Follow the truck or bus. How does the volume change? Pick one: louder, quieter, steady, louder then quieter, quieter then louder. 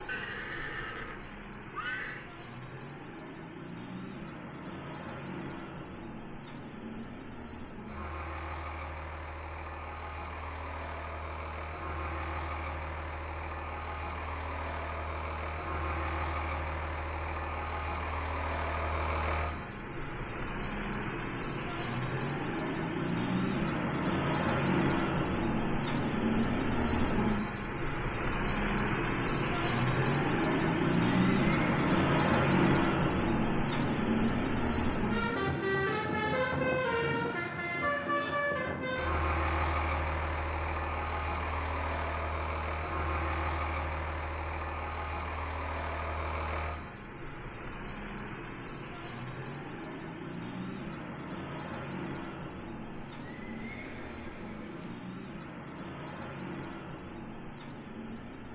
louder then quieter.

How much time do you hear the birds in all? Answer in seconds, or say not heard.
not heard.